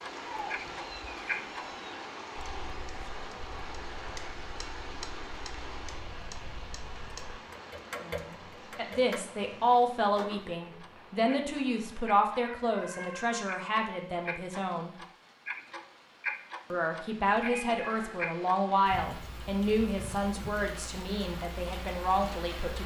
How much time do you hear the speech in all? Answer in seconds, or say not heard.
13 s.